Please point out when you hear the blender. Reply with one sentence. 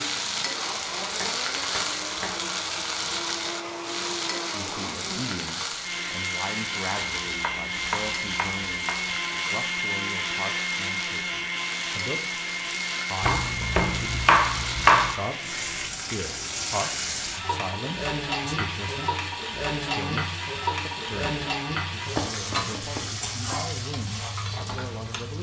You can hear the blender from 0.2 to 15.9 s.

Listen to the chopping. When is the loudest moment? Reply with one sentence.
The volume of the chopping peaks at 15 seconds.